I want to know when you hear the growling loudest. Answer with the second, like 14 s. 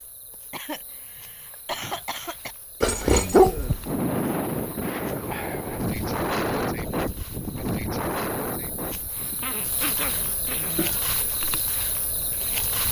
3 s.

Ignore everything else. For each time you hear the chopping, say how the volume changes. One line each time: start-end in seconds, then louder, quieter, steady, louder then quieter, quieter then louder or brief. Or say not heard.
not heard.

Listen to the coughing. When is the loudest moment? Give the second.
2 s.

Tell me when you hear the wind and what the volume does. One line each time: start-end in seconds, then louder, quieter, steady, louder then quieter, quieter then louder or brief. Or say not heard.
3.2-12.8 quieter.